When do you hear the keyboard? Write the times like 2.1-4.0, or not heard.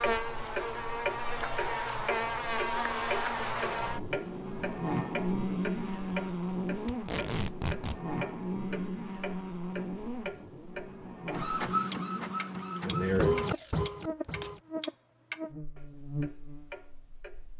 not heard.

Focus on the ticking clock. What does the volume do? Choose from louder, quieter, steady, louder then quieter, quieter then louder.
quieter.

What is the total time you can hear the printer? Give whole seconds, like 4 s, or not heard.
3 s.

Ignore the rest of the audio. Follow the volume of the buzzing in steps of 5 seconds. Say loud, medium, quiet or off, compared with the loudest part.
loud, loud, medium, medium.